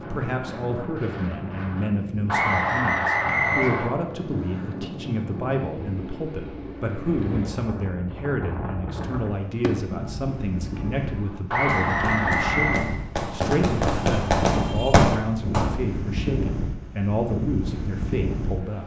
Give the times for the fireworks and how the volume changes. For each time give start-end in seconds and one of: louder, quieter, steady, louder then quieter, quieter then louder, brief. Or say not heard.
9.5-15.8 louder.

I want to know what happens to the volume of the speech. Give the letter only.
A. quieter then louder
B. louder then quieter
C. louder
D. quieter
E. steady
E.